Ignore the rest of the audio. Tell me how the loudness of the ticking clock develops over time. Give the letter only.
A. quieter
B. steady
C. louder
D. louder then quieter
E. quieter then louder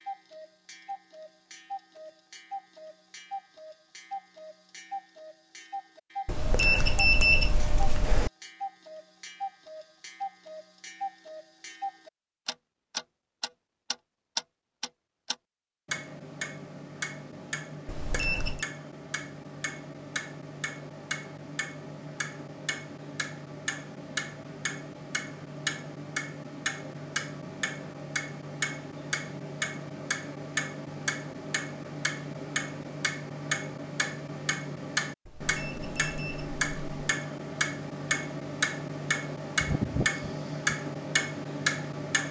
C.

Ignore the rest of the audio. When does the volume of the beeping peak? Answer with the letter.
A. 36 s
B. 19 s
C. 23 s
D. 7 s
D.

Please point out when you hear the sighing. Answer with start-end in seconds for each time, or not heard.
39.6-40.7.